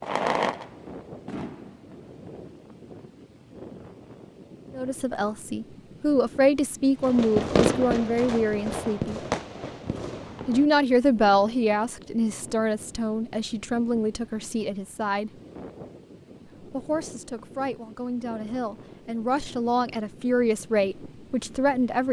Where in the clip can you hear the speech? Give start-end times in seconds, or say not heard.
4.7-9.2, 10.4-15.3, 16.6-22.0.